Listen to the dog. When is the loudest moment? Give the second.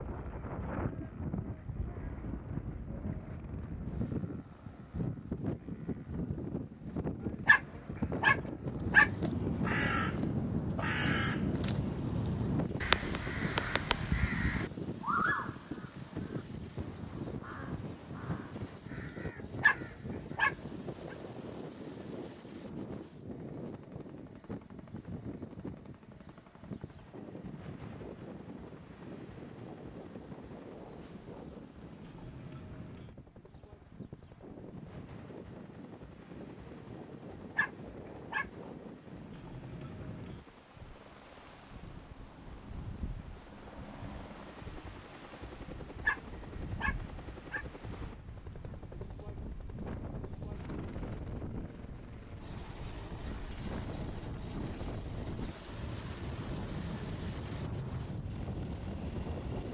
9 s.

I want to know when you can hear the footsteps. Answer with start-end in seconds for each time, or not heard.
not heard.